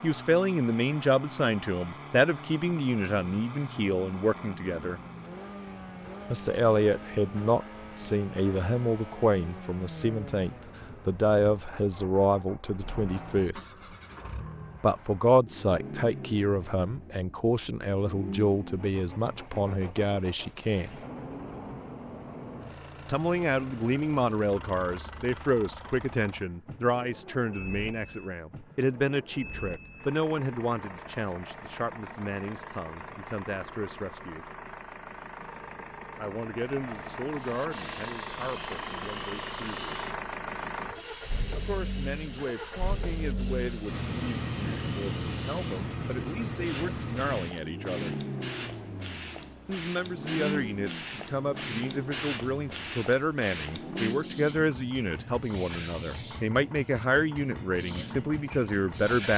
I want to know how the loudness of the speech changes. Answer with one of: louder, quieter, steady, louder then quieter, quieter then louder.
quieter then louder.